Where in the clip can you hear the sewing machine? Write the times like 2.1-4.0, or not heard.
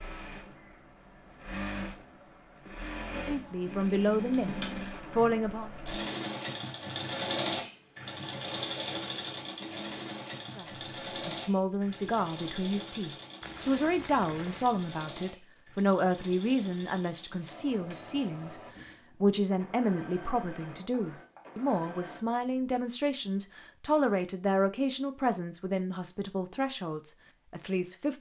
0.0-22.2.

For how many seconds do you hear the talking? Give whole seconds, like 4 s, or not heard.
20 s.